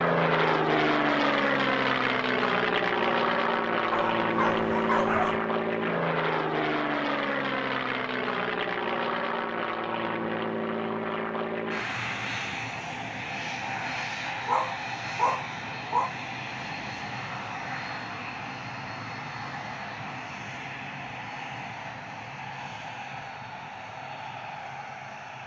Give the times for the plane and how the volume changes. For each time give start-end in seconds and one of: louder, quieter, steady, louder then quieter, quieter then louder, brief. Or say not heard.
0.0-25.4 quieter.